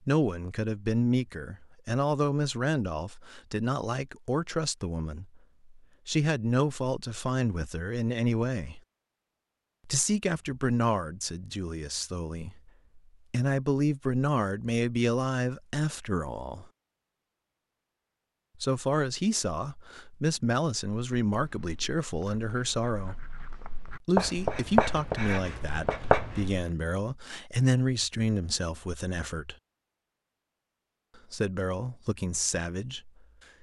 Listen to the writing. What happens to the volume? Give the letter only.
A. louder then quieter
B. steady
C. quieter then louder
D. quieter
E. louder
E.